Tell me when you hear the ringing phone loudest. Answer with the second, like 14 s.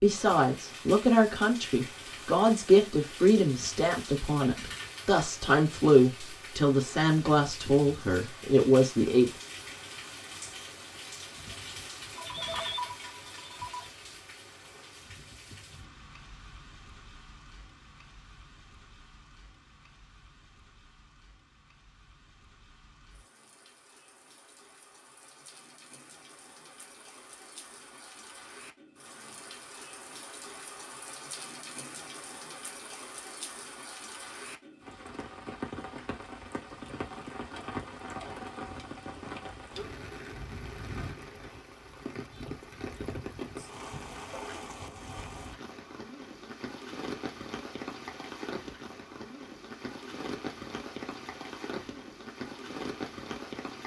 13 s.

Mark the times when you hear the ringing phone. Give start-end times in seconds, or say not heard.
12.2-13.9.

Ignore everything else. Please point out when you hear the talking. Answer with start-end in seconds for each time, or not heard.
0.0-9.3.